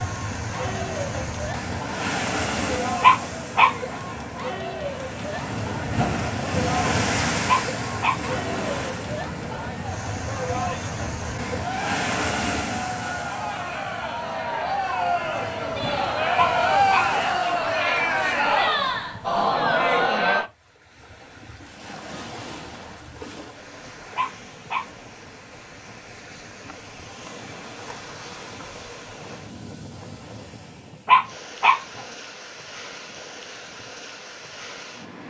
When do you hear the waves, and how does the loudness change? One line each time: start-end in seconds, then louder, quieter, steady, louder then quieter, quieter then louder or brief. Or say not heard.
0.0-35.2 quieter.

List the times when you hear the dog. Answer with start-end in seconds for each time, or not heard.
3.0-4.0, 7.5-8.2, 16.4-17.1, 24.1-25.1, 31.1-32.0.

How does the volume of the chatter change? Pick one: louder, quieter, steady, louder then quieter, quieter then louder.
louder.